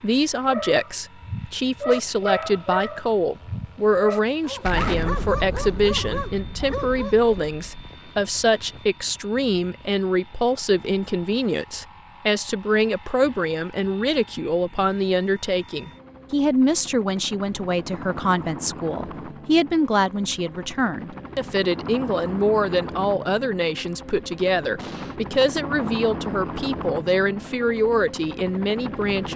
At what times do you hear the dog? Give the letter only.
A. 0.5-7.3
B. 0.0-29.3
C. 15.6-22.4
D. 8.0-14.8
A.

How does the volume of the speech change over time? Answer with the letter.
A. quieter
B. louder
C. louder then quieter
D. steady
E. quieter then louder
D.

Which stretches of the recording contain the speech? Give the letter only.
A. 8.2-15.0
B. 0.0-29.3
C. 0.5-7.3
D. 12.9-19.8
B.